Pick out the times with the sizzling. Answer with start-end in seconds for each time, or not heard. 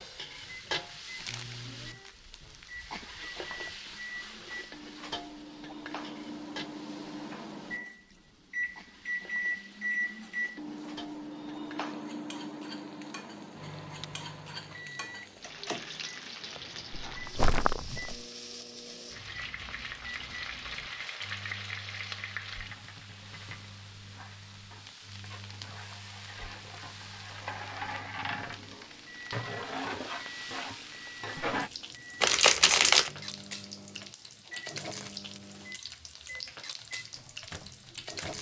0.0-38.3.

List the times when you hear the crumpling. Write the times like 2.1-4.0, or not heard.
1.1-2.7, 17.1-18.2, 32.2-33.1.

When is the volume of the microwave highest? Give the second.
10 s.